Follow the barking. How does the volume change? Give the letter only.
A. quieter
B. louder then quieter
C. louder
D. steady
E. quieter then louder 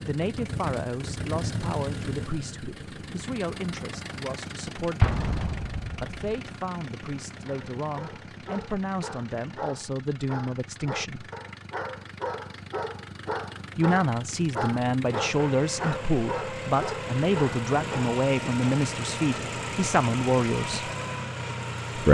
C.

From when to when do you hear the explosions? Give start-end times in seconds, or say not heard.
5.0-6.2.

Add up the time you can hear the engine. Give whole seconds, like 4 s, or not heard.
22 s.